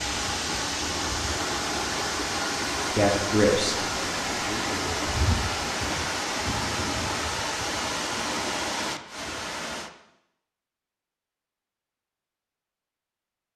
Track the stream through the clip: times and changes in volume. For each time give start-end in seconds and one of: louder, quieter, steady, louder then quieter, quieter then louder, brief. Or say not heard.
0.0-9.9 steady.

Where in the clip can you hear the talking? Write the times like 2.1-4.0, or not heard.
3.0-5.1.